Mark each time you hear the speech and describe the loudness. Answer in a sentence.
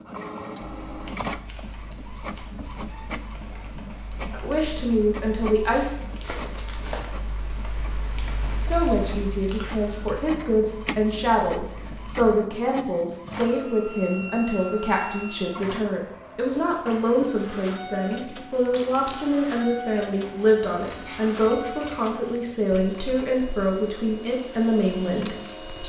The speech can be heard briefly from 4.3 to 6.0 s; and from 8.5 to 25.8 s, at a steady volume.